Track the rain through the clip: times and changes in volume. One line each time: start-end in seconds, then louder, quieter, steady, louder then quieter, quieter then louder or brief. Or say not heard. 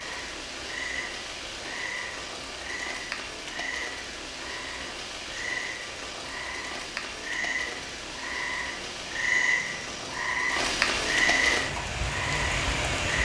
0.0-13.2 louder.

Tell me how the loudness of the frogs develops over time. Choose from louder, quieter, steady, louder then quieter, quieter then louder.
louder.